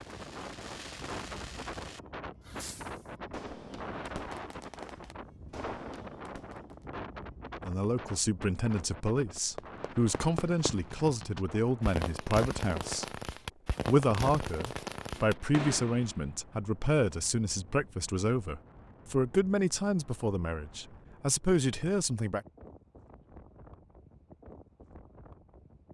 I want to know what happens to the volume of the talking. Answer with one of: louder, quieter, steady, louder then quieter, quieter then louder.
steady.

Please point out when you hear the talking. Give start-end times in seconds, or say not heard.
7.6-13.1, 13.8-22.4.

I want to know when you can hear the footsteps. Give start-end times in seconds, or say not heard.
not heard.